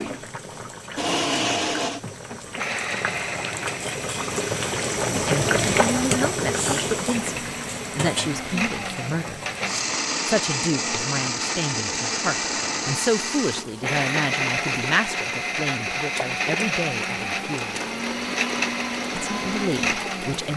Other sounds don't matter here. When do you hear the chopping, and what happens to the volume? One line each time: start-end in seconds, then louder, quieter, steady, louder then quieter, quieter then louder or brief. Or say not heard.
not heard.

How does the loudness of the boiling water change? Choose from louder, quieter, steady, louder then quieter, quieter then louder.
louder then quieter.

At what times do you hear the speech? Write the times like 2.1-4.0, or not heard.
5.1-9.4, 10.2-17.8, 19.1-20.5.